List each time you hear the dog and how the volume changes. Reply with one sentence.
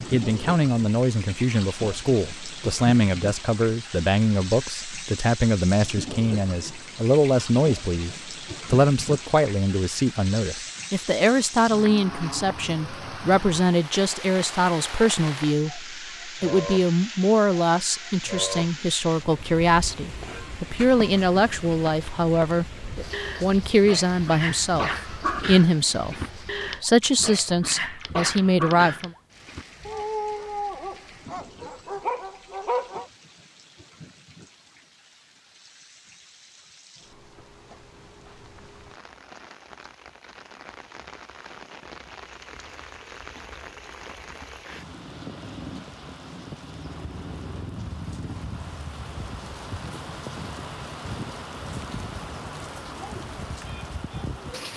You can hear the dog from 22.8 to 33.0 s, at a steady volume.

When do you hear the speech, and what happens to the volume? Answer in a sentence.
You can hear the speech from 0.1 to 22.8 s, at a steady volume; briefly from 23.4 to 26.1 s; and briefly from 26.8 to 29.1 s.